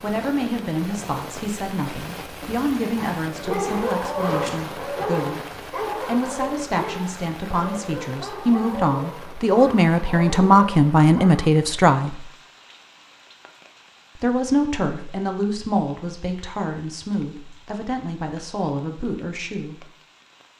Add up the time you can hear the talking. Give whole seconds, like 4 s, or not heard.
17 s.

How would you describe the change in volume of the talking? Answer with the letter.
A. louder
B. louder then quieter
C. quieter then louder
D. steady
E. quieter
B.